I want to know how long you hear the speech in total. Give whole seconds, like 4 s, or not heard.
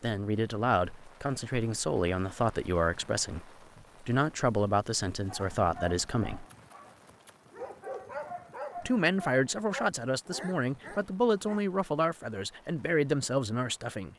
12 s.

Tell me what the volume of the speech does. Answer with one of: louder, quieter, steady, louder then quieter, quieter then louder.
steady.